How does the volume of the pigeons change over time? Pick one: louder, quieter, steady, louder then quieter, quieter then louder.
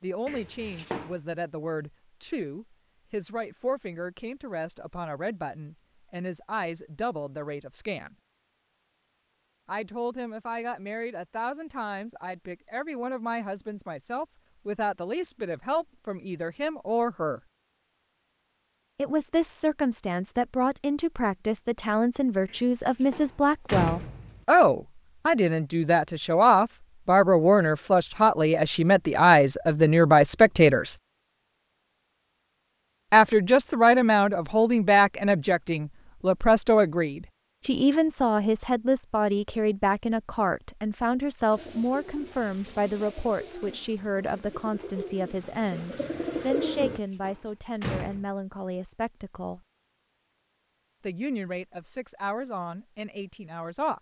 louder.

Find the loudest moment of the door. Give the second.
24 s.